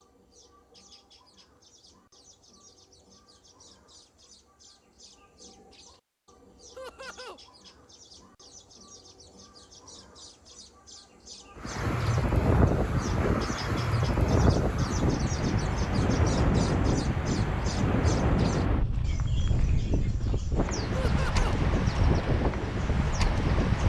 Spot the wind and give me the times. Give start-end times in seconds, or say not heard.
11.6-23.8.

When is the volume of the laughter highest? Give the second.
21 s.